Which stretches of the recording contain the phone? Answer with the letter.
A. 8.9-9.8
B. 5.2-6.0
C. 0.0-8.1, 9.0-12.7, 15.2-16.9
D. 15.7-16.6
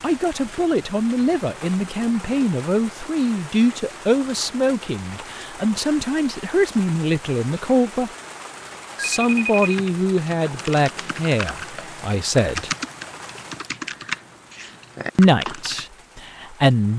A.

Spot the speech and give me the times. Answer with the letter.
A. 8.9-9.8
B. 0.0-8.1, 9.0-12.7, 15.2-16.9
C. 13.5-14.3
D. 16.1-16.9
B.